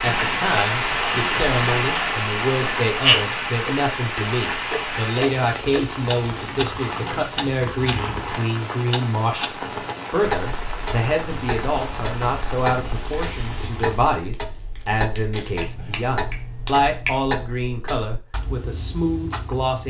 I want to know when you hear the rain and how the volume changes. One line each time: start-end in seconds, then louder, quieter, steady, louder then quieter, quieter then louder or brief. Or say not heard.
0.0-14.2 quieter.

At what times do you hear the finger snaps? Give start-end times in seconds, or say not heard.
15.6-17.1.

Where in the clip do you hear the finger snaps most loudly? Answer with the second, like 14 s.
17 s.